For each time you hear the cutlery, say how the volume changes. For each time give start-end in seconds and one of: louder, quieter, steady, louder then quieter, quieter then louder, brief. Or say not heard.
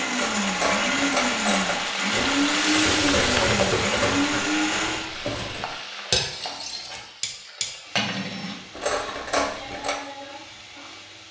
0.1-9.9 quieter then louder.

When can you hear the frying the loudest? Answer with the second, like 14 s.
3 s.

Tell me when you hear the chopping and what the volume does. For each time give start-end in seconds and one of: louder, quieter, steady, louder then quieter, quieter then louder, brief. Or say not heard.
not heard.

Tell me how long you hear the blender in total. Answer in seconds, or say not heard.
5 s.